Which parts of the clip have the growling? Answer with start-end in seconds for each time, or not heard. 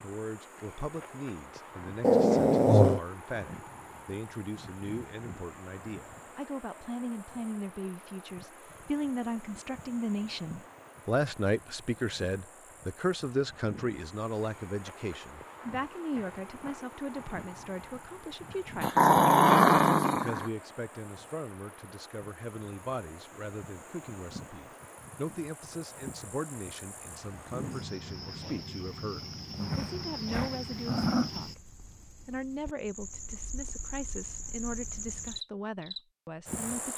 2.0-3.0, 18.8-20.5, 29.4-31.3.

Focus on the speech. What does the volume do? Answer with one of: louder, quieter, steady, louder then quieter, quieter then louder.
louder then quieter.